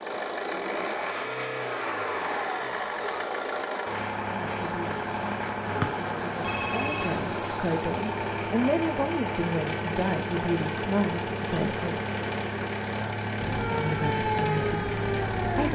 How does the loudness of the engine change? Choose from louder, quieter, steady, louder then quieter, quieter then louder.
steady.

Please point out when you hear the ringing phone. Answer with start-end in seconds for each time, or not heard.
6.4-7.2.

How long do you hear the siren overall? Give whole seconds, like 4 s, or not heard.
2 s.